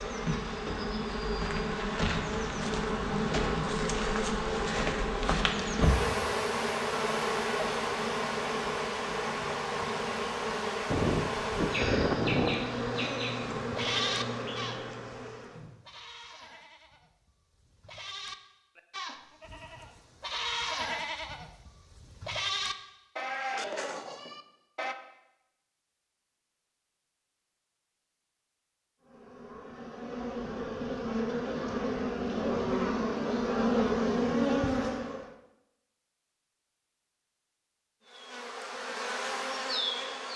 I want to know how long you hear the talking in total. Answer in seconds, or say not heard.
not heard.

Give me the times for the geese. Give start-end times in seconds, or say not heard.
10.9-12.8.